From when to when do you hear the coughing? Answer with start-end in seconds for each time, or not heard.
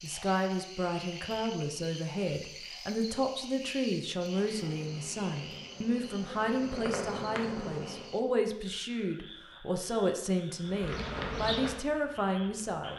not heard.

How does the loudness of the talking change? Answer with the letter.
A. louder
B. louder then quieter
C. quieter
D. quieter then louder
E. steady
E.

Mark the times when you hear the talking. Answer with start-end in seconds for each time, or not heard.
0.0-12.9.